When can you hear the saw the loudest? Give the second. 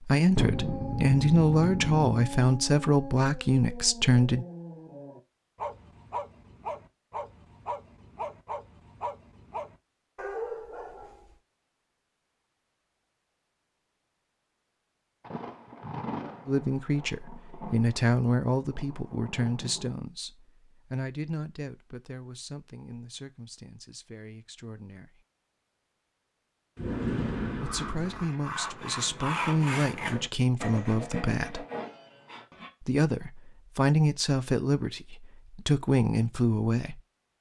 29 s.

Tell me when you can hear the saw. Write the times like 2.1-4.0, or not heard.
27.5-32.7.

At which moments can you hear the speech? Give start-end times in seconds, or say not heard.
0.0-4.5, 16.4-25.2, 27.6-31.6, 32.8-37.0.